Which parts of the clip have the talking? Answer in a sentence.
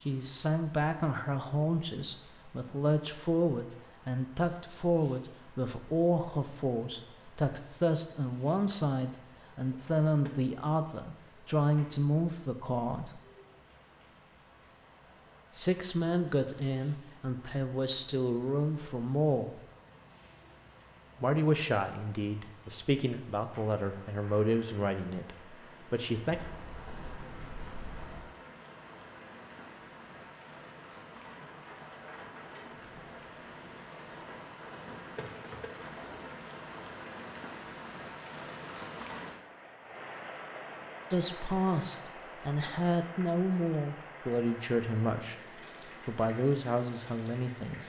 You can hear the talking from 0.1 to 13.2 s, from 15.5 to 19.6 s, from 21.2 to 26.4 s, from 41.1 to 45.4 s and from 46.0 to 47.8 s.